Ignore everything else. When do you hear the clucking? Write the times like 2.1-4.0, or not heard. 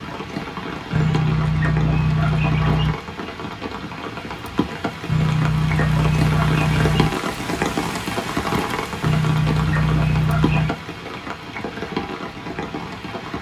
0.9-3.0, 5.0-7.1, 9.0-10.8.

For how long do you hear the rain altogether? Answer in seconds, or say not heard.
13 s.